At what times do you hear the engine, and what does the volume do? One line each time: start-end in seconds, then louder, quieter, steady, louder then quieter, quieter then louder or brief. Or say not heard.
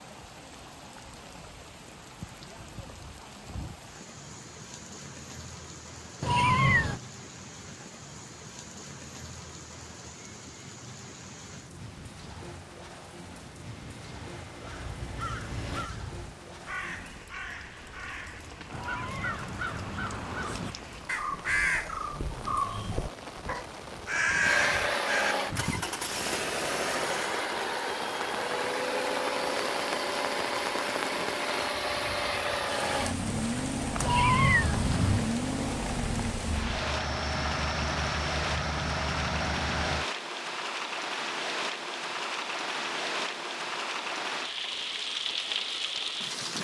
13.3-15.9 brief
24.4-40.0 steady.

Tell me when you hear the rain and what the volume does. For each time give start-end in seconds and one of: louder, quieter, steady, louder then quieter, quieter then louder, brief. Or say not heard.
0.0-46.6 louder.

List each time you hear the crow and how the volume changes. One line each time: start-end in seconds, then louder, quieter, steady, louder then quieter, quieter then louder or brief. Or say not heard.
14.6-25.9 louder.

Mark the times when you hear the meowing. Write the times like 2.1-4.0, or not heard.
6.2-7.0, 18.7-20.1, 34.0-35.2.